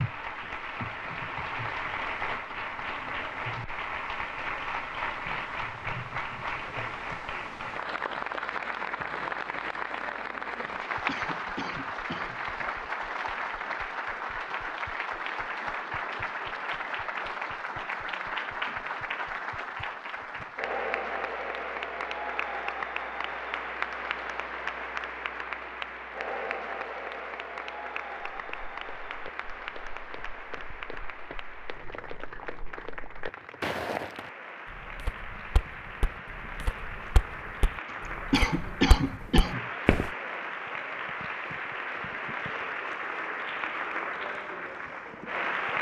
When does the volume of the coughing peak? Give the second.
39 s.